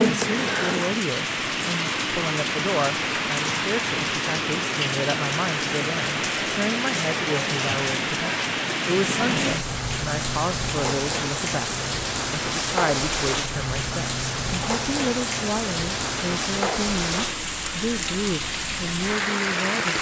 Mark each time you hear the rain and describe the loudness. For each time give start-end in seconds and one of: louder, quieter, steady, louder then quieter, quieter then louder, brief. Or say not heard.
0.0-19.9 steady.